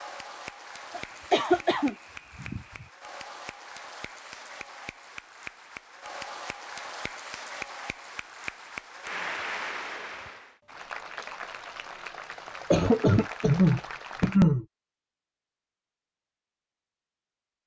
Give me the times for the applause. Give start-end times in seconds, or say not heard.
0.0-14.4.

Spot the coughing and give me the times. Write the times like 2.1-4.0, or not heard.
0.9-2.9, 12.7-14.7.